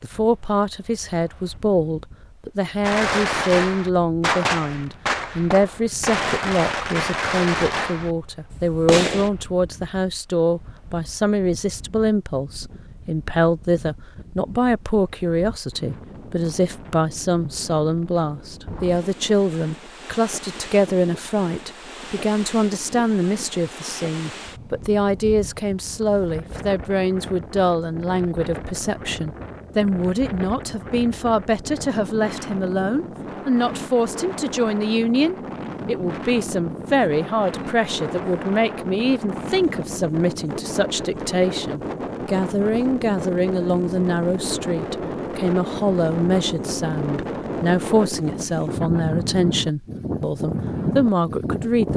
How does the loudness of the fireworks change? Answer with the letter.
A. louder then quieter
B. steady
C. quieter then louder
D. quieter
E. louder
D.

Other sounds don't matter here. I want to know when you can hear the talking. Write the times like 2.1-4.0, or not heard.
0.0-51.9.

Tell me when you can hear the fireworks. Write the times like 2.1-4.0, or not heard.
2.8-9.3.